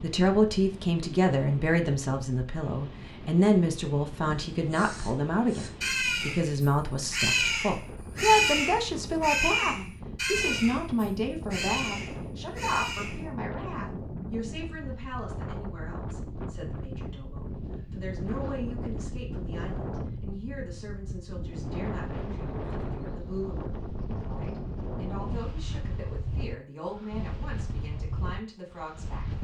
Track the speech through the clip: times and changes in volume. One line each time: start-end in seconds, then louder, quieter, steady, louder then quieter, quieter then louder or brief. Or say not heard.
0.0-29.4 quieter.